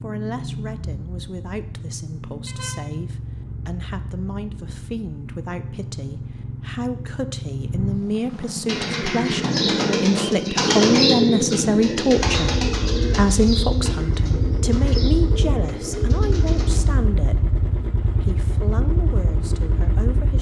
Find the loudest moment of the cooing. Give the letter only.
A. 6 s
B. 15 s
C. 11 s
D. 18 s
C.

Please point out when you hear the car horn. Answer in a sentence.
The car horn can be heard from 2.5 to 3.0 s.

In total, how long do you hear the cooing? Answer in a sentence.
The cooing can be heard for 8 seconds in total.